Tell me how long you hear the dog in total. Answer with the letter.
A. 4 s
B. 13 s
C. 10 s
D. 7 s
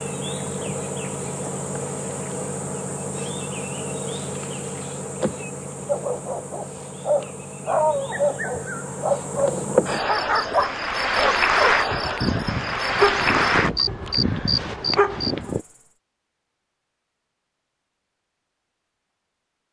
C.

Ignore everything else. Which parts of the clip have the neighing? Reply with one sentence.
The neighing can't be heard in this clip.